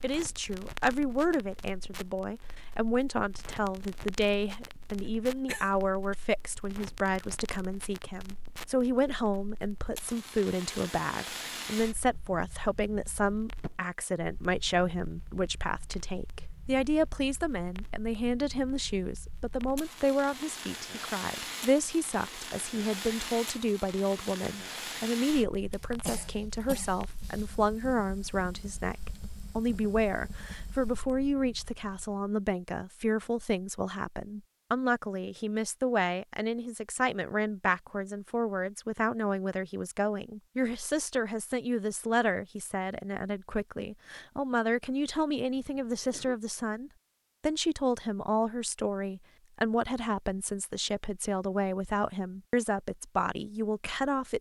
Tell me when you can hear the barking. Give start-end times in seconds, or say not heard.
not heard.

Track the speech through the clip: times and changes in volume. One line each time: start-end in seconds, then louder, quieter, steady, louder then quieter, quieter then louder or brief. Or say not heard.
0.0-54.3 steady.